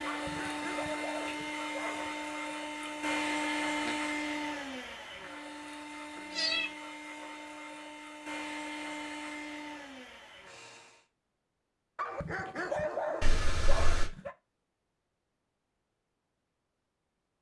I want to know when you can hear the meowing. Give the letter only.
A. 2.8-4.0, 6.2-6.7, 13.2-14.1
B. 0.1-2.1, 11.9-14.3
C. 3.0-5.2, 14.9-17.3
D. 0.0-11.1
A.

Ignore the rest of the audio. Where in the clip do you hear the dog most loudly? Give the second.
13 s.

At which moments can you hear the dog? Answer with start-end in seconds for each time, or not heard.
0.1-2.1, 11.9-14.3.